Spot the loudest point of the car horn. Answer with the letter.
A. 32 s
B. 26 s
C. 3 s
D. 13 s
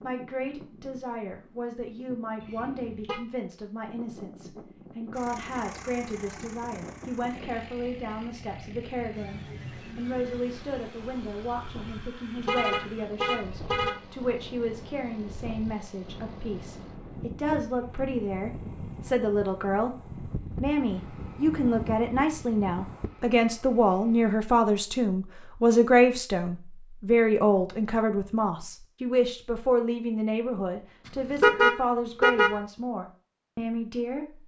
A.